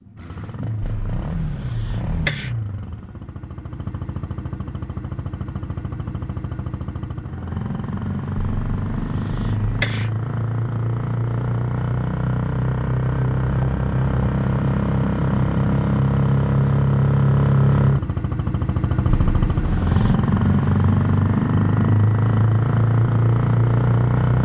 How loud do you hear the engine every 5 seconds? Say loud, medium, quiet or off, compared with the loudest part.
quiet, medium, loud, loud, loud.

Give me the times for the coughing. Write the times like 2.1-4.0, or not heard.
0.8-2.5, 8.3-10.1, 19.1-20.1.